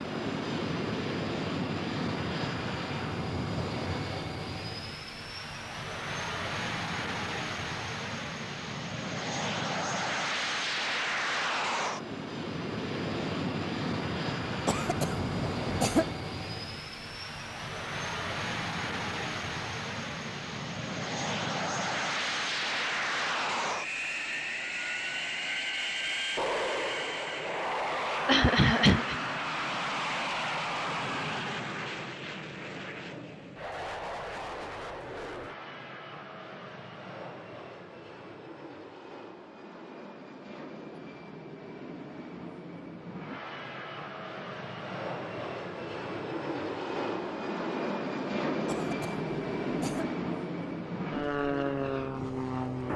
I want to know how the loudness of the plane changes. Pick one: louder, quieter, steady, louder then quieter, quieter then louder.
quieter then louder.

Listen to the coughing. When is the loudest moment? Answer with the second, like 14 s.
29 s.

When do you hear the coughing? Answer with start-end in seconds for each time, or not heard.
14.7-16.1, 28.2-29.1, 48.6-50.1.